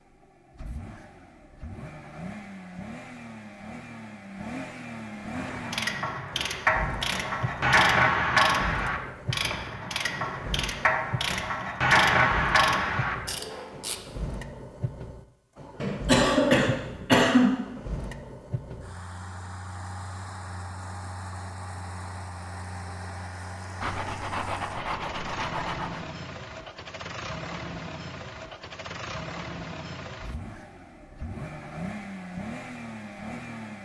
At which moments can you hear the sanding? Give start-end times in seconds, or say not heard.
23.8-26.1.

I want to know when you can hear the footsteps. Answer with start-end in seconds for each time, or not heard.
not heard.